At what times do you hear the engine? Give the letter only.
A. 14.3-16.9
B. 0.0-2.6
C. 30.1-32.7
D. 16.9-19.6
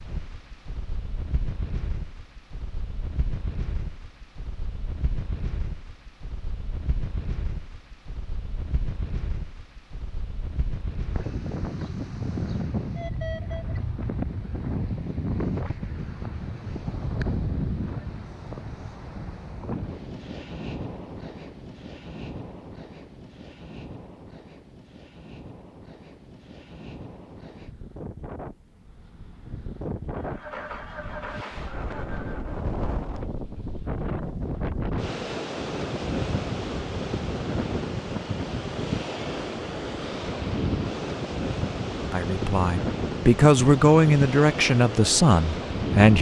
C.